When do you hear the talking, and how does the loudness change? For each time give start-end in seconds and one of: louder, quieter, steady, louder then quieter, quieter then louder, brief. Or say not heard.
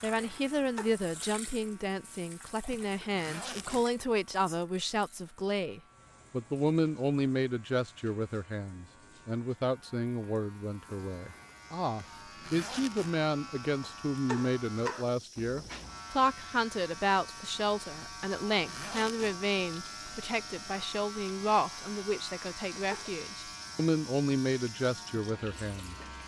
0.0-25.9 steady.